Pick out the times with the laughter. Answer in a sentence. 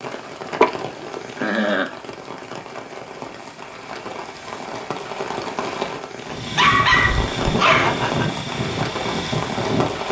The laughter can be heard from 0.6 to 1.9 s and from 7.7 to 8.2 s.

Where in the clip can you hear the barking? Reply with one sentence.
The barking can be heard from 6.5 to 8.0 s.